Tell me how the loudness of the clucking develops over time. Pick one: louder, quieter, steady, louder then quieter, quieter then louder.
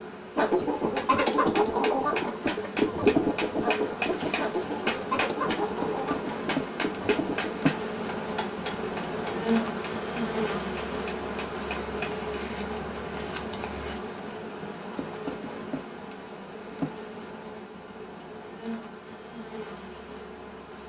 quieter.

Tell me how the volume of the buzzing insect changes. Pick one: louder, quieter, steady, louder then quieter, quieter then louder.
louder then quieter.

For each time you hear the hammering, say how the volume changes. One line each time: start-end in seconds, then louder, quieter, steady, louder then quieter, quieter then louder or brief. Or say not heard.
0.9-12.2 quieter.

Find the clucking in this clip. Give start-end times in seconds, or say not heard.
0.3-7.5.